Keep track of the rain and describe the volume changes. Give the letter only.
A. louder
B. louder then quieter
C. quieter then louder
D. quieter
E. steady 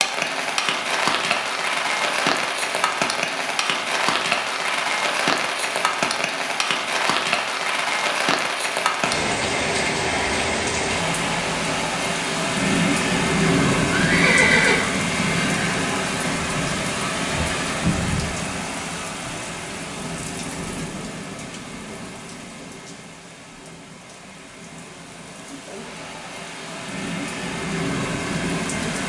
D.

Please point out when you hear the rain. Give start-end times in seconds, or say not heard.
0.0-29.0.